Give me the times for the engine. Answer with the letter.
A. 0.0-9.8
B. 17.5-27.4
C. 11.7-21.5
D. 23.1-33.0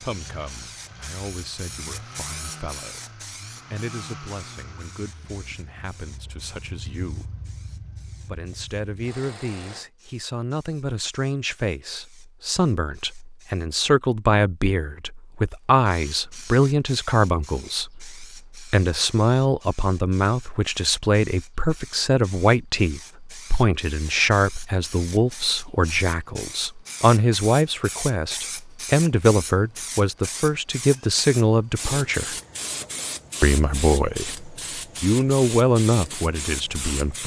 A.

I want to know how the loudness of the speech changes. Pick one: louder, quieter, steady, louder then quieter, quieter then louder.
louder.